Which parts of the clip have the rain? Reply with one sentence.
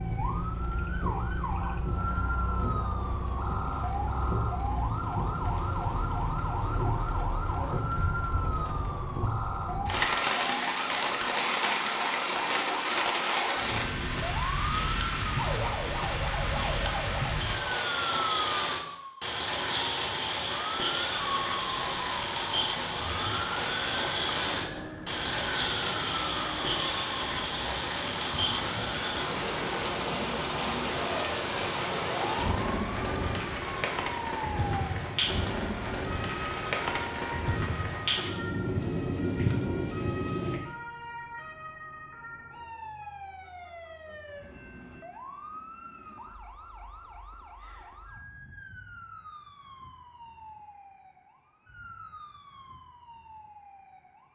The rain can be heard from 0.0 to 40.6 s.